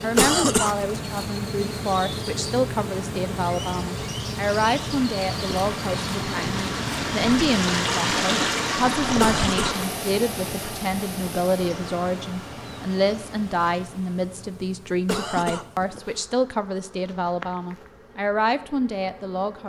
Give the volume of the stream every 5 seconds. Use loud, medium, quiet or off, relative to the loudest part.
quiet, loud, medium, off.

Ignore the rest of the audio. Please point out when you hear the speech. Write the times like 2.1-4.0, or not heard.
0.0-19.6.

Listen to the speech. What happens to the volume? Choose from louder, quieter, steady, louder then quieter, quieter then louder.
steady.